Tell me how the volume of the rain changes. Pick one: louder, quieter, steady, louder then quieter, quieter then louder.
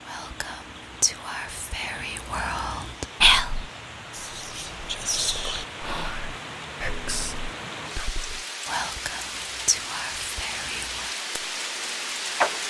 louder.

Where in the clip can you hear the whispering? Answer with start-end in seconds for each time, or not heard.
0.1-11.1.